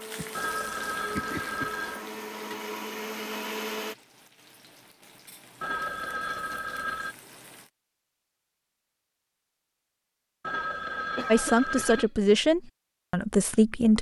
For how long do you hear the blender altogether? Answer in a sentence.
You can hear the blender for 4 seconds altogether.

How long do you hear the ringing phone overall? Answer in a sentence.
The ringing phone can be heard for 5 seconds in total.